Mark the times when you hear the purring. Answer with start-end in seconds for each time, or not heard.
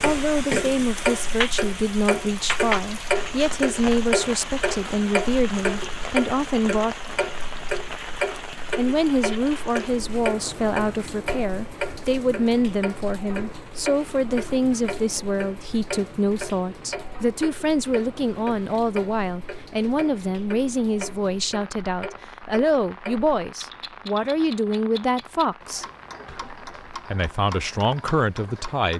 not heard.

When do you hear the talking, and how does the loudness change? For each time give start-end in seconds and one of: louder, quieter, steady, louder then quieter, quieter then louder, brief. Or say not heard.
0.0-7.0 steady
8.8-28.9 steady.